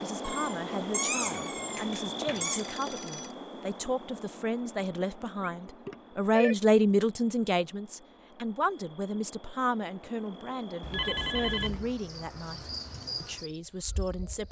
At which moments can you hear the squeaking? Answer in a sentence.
The squeaking can be heard from 0.2 to 2.7 s.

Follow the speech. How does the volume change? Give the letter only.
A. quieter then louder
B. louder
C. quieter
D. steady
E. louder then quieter
E.